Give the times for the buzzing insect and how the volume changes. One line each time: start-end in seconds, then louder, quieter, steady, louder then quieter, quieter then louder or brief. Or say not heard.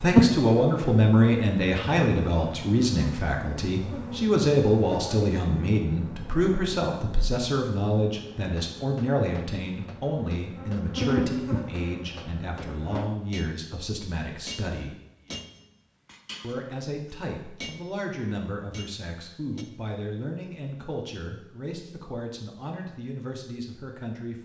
0.0-13.1 quieter then louder.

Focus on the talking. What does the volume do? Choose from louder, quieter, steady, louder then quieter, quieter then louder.
quieter.